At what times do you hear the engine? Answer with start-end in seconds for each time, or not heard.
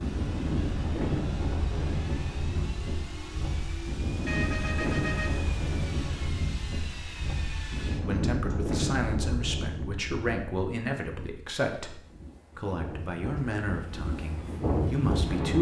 0.0-8.8.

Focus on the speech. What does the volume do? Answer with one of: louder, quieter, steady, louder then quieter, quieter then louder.
steady.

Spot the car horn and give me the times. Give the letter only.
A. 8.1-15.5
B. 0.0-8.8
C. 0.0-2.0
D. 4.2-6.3
D.